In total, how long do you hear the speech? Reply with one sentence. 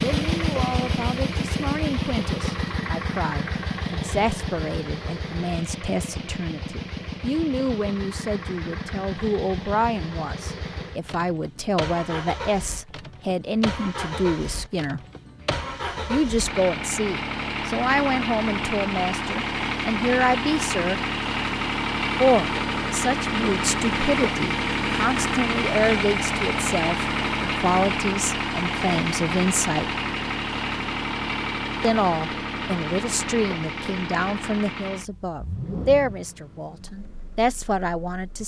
You can hear the speech for 34 seconds altogether.